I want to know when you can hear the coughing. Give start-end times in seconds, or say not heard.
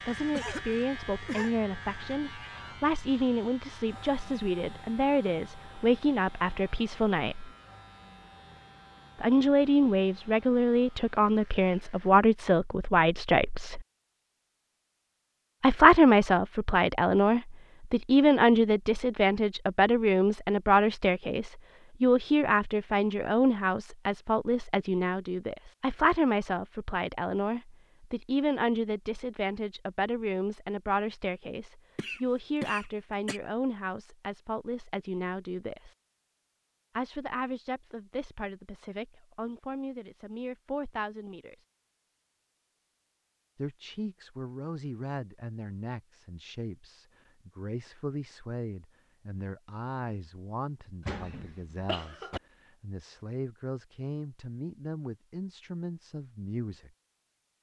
0.3-1.6, 31.9-33.4, 51.0-52.4.